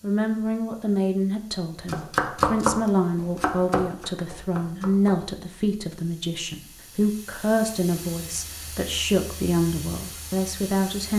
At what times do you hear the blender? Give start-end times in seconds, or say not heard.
not heard.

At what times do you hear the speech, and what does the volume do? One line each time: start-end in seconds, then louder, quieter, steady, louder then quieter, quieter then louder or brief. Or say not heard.
0.0-11.1 steady.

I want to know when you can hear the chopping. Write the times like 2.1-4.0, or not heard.
1.9-5.2.